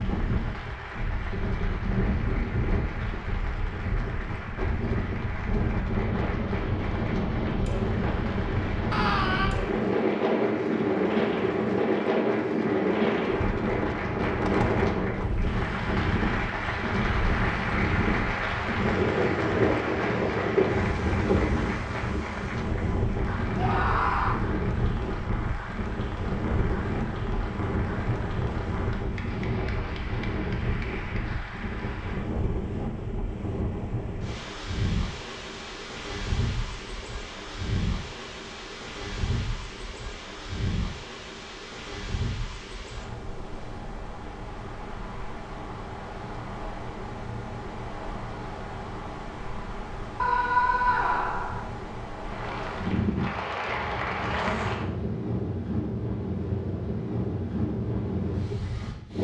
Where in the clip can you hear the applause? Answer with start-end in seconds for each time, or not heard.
0.0-32.4, 52.2-54.9.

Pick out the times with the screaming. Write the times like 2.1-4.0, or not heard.
8.9-9.6, 23.6-24.4, 50.2-51.6.